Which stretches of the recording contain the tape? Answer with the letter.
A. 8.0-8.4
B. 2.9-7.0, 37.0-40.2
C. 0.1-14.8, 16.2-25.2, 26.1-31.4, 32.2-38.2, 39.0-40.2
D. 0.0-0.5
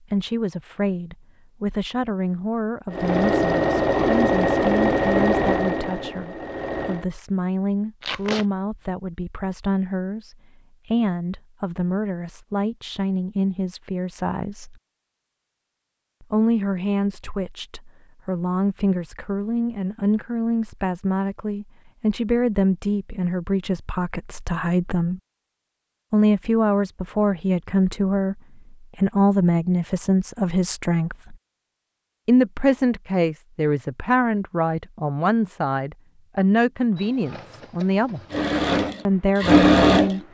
A.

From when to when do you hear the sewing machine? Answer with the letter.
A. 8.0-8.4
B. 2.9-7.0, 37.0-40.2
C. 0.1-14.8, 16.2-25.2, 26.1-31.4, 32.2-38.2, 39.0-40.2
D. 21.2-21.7
B.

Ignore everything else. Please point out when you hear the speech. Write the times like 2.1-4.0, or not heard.
0.1-14.8, 16.2-25.2, 26.1-31.4, 32.2-38.2, 39.0-40.2.